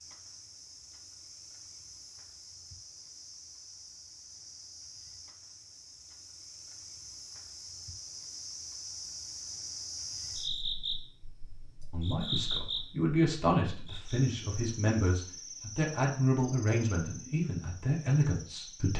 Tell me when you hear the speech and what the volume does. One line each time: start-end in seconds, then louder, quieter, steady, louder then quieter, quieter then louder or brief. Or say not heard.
11.9-18.9 steady.